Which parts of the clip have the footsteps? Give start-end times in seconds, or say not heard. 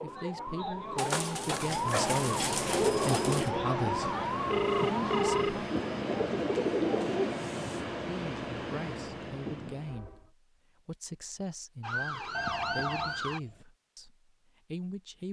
not heard.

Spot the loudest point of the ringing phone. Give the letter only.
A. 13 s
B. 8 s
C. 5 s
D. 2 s
C.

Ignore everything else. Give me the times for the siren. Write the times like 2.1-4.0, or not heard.
0.0-5.5, 11.8-13.4.